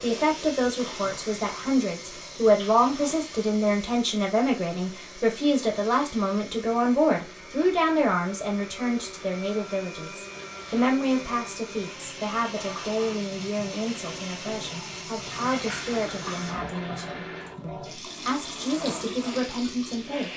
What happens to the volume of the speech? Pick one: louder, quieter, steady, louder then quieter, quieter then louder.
quieter.